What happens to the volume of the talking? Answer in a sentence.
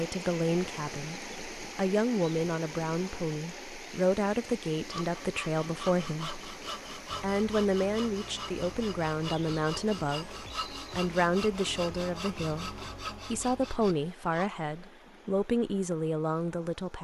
The volume of the talking stays about the same.